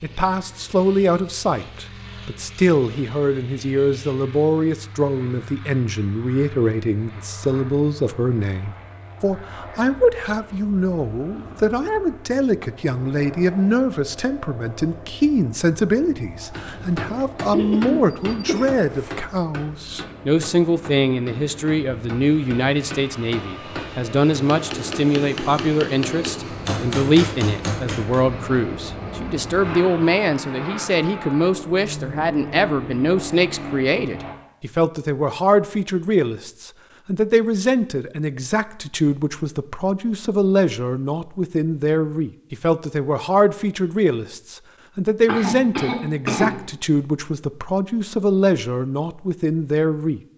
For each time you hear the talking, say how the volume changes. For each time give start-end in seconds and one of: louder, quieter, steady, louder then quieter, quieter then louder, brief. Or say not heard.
0.0-50.2 steady.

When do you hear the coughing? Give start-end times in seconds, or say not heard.
17.5-19.1, 45.2-46.6.